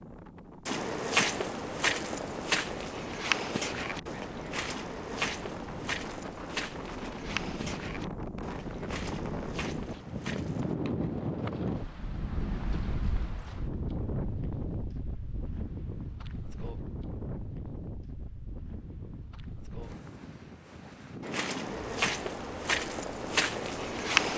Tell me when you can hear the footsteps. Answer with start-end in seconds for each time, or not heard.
0.7-10.8, 21.2-24.3.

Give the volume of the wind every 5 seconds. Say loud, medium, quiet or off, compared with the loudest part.
medium, loud, loud, medium, medium.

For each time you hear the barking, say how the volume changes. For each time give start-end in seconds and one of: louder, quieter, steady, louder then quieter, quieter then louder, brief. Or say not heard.
not heard.